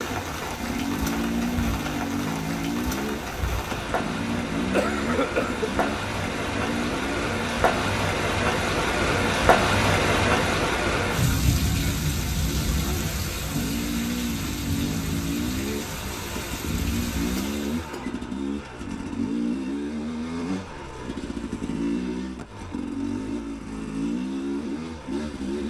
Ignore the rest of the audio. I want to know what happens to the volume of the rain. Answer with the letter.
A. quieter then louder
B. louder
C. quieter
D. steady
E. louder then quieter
E.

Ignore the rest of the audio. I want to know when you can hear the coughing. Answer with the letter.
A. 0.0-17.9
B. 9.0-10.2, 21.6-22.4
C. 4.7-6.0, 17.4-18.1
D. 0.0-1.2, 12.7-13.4
C.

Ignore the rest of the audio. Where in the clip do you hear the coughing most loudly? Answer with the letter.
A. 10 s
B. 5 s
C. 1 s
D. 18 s
B.